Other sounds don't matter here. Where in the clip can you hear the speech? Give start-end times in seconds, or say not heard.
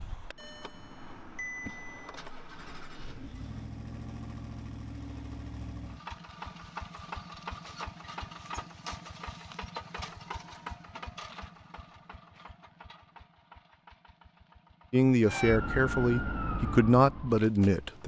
14.9-18.0.